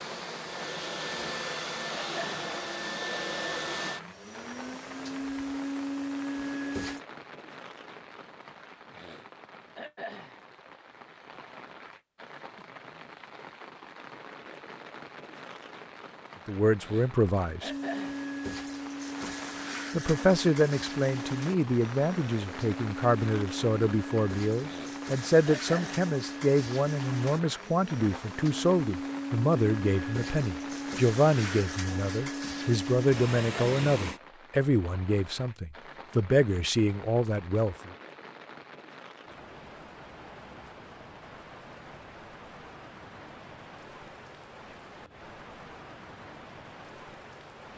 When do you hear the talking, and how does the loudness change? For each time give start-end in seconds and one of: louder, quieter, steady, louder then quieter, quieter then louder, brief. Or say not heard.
16.4-17.7 brief
19.9-38.0 steady.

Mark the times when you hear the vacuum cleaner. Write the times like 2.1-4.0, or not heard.
0.0-7.0, 17.6-34.2.